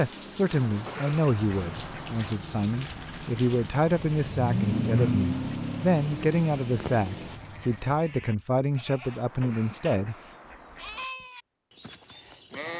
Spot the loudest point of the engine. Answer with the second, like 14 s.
5 s.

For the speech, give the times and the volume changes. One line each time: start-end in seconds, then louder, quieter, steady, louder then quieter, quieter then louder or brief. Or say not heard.
0.0-10.2 steady.